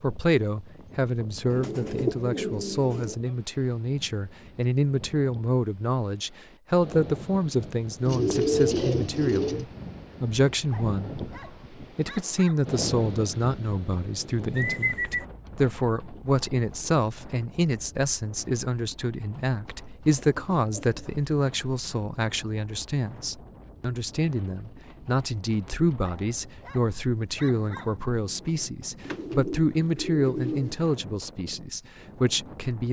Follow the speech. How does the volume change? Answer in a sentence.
The volume of the speech stays about the same.